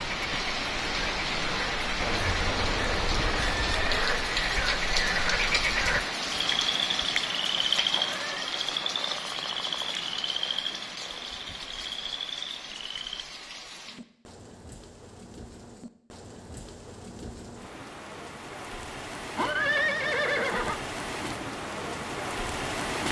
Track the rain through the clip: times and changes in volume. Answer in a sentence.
You can hear the rain from 0.0 to 23.0 s, getting quieter then louder.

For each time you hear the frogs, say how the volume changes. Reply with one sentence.
You can hear the frogs from 0.0 to 13.2 s, getting louder then quieter.